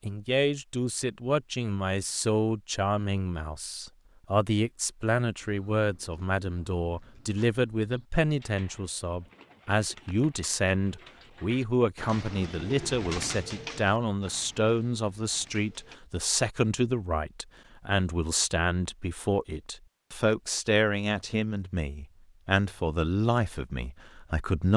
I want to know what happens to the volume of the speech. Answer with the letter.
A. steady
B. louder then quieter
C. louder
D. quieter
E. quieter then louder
A.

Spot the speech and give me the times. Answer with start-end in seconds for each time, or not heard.
0.0-24.7.